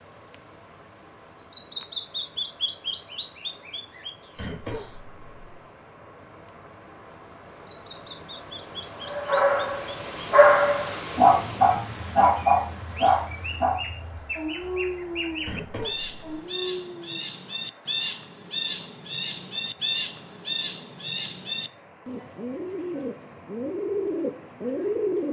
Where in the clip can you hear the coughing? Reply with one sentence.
You can hear the coughing from 4.3 to 5.6 s and from 15.4 to 16.2 s.